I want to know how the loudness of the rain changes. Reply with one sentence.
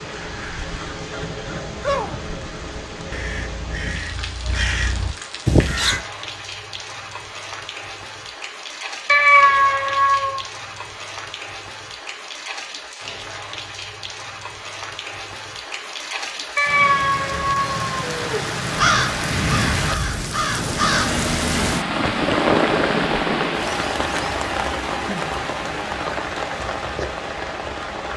The volume of the rain goes up.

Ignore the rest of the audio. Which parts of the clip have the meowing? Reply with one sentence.
The meowing can be heard from 9.1 to 10.4 s and from 16.6 to 18.4 s.